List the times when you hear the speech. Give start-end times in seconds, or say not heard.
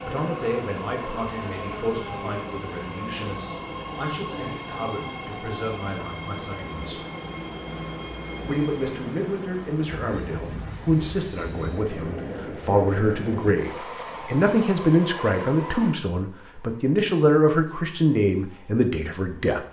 0.0-7.0, 8.4-19.6.